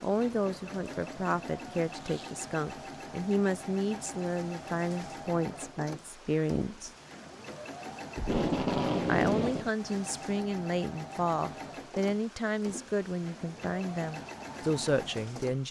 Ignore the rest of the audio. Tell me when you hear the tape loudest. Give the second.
9 s.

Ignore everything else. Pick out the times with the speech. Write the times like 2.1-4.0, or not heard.
0.0-6.9, 9.1-15.6.